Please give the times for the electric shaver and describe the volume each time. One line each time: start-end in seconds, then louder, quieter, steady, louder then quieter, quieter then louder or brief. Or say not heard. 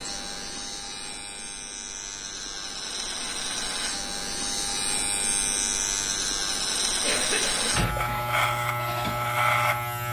0.0-10.0 louder.